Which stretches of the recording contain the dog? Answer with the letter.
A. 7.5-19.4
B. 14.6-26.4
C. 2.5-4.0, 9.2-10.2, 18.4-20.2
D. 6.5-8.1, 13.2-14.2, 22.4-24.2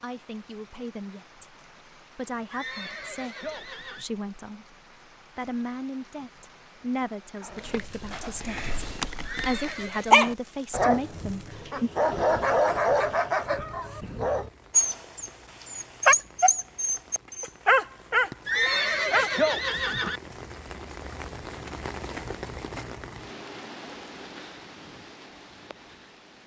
A.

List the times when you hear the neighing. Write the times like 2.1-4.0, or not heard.
2.5-4.0, 9.2-10.2, 18.4-20.2.